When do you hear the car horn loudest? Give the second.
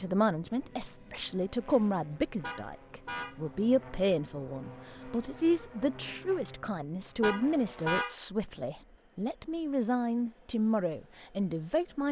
8 s.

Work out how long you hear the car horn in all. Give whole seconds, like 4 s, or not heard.
2 s.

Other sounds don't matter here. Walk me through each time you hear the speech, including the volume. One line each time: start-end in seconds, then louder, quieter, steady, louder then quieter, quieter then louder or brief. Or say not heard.
0.0-12.0 steady.